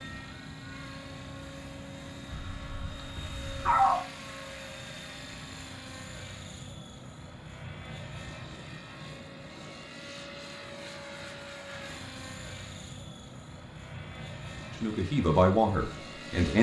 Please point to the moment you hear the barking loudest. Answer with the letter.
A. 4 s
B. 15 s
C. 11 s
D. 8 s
A.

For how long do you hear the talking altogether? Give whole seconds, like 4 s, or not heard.
2 s.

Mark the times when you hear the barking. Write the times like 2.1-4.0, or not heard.
2.3-4.0.